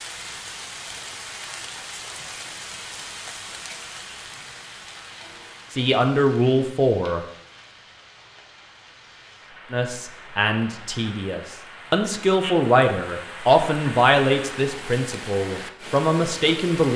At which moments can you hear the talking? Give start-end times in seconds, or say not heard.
5.7-7.2, 9.7-16.9.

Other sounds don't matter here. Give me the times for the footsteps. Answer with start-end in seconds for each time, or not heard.
not heard.